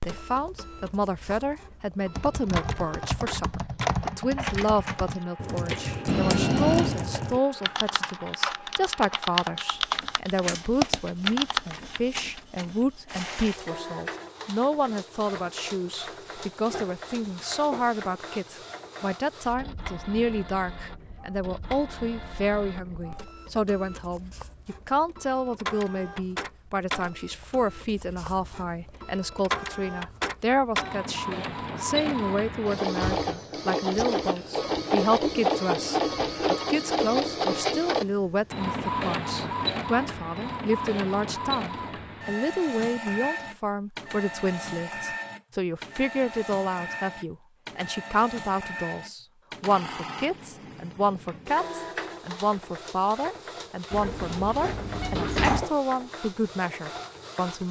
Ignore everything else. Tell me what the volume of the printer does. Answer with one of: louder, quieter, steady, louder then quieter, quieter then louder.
louder then quieter.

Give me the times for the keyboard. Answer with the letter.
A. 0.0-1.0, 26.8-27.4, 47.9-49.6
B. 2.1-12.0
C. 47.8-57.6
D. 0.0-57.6
B.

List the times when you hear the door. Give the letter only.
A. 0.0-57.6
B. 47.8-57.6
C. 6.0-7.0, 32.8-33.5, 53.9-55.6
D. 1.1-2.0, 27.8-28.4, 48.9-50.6
C.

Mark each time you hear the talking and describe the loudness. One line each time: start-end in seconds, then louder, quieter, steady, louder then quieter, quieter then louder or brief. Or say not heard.
0.0-57.6 steady.